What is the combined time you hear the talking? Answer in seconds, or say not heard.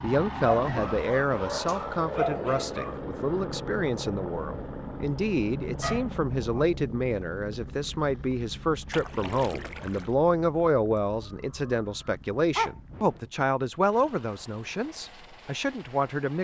16 s.